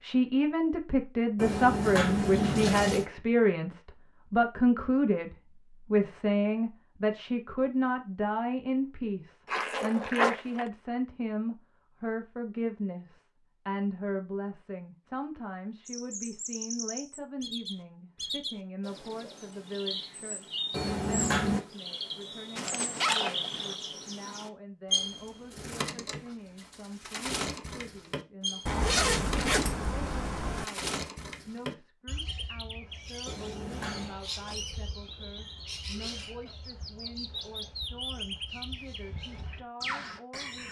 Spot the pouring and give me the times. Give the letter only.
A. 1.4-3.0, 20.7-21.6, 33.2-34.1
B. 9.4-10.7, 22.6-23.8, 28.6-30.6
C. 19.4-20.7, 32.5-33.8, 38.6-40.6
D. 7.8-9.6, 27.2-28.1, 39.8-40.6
A.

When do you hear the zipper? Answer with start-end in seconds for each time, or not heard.
9.4-10.7, 22.6-23.8, 28.6-30.6.